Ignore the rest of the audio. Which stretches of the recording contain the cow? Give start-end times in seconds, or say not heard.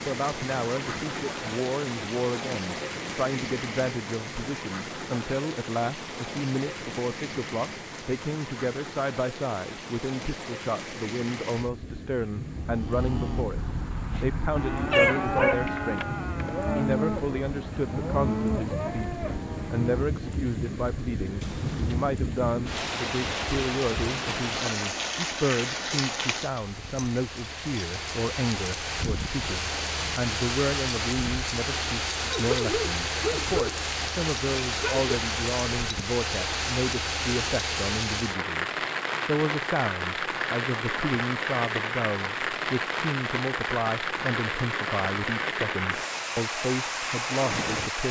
12.6-20.2.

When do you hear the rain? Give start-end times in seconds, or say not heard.
0.0-48.0.